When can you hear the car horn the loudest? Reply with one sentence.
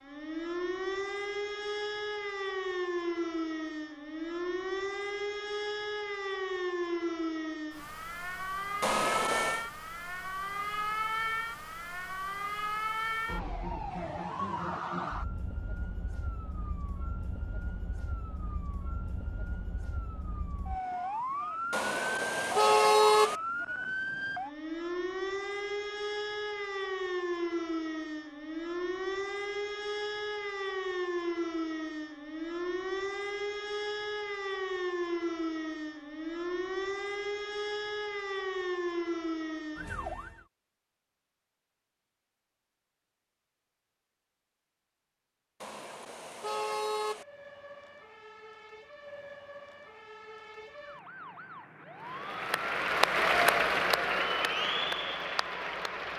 The loudest moment of the car horn is at 23 seconds.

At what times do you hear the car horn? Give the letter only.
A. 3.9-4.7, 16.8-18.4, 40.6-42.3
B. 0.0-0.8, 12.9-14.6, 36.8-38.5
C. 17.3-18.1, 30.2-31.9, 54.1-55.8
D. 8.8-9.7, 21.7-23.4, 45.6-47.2
D.